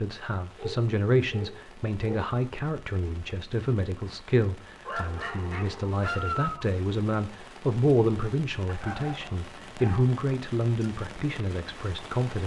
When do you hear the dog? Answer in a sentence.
You can hear the dog from 0.6 to 2.2 s, from 4.8 to 6.7 s and from 8.7 to 10.2 s.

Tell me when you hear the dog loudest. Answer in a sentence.
The volume of the dog peaks at 6 seconds.